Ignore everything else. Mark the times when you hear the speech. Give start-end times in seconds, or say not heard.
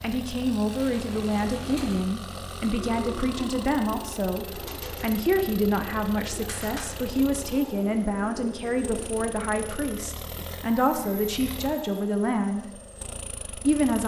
0.0-12.6, 13.5-14.0.